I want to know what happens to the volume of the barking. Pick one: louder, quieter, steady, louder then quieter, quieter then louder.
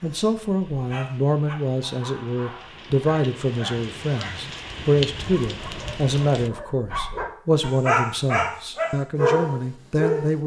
louder.